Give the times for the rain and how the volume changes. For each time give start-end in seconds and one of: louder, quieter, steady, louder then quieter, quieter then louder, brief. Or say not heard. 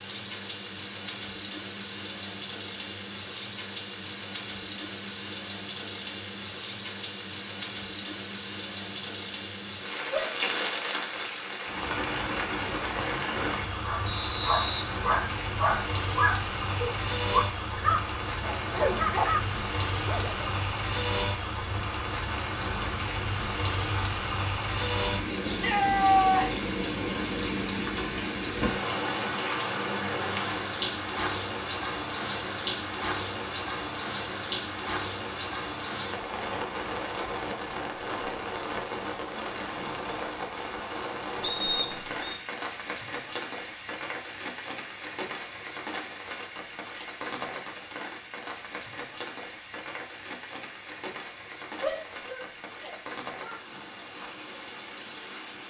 0.0-55.6 quieter.